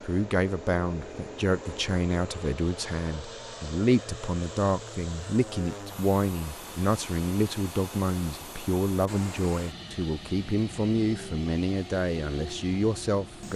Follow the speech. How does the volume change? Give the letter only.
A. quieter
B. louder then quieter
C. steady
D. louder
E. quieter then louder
C.